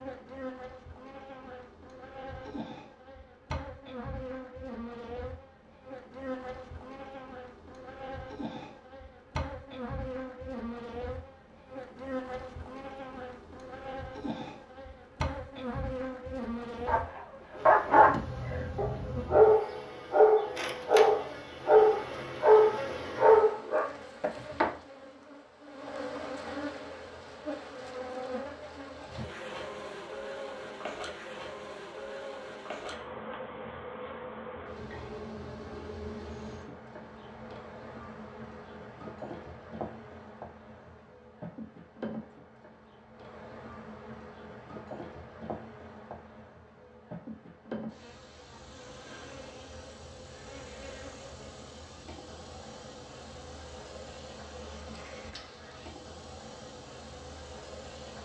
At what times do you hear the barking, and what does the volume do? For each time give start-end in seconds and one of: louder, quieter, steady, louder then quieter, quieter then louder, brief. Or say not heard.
16.9-23.9 steady.